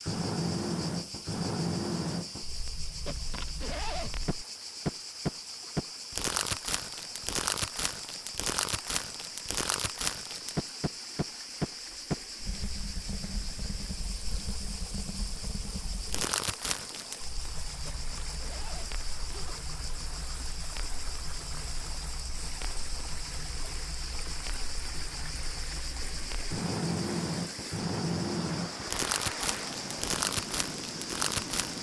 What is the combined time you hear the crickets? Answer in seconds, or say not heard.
32 s.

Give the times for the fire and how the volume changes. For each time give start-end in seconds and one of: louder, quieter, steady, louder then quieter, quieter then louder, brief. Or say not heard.
0.0-31.7 quieter then louder.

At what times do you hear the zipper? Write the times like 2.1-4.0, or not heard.
3.0-4.3, 17.9-19.6.